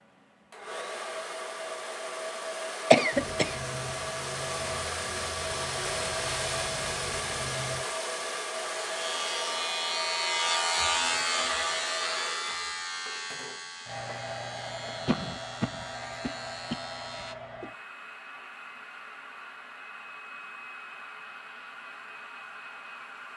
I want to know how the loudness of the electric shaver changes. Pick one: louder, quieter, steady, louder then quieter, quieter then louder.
louder then quieter.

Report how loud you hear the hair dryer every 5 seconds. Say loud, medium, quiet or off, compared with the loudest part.
loud, loud, medium, medium, medium.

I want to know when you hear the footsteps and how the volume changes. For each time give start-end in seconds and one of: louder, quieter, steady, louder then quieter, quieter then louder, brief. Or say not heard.
not heard.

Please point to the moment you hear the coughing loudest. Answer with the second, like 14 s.
3 s.